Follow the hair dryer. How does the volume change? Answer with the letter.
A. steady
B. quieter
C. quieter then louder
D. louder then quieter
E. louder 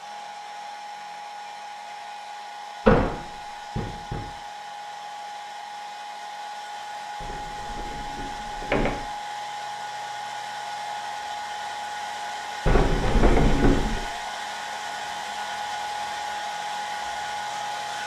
E.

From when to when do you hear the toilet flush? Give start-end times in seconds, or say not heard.
not heard.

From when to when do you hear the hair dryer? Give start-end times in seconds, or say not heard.
0.0-18.0.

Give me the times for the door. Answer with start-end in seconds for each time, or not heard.
2.9-4.2, 7.2-9.0, 12.7-14.1.